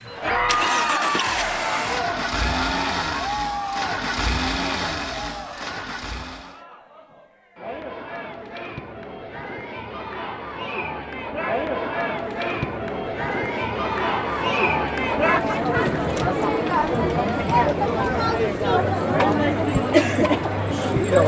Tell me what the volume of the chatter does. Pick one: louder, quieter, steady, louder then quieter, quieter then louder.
quieter then louder.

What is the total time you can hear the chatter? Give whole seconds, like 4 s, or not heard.
21 s.